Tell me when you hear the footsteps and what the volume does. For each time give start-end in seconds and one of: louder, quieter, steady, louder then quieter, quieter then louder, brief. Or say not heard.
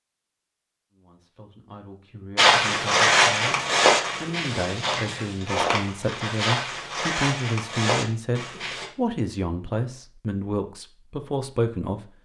2.4-8.9 quieter.